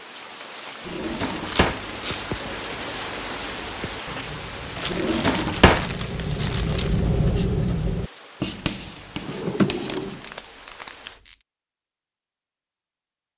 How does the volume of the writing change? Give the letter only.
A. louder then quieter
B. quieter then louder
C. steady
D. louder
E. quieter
A.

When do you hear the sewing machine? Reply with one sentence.
The sewing machine can't be heard in this clip.